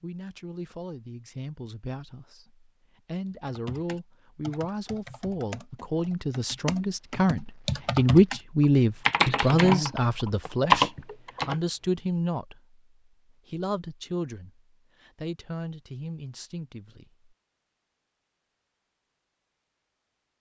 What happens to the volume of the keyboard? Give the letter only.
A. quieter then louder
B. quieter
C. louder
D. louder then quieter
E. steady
C.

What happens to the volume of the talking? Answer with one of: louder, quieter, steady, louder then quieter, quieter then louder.
louder then quieter.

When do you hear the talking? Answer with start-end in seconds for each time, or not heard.
0.0-12.8, 13.4-17.2.